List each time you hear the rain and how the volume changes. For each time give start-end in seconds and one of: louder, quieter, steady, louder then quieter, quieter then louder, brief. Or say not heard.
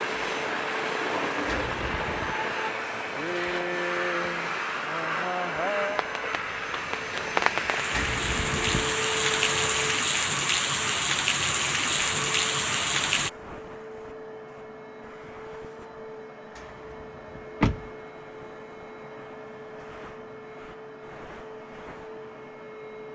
0.0-13.3 louder.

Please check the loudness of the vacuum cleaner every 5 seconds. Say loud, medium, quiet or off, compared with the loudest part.
loud, loud, medium, medium, medium.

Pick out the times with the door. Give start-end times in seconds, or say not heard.
1.4-2.4, 7.9-8.9, 17.4-17.9.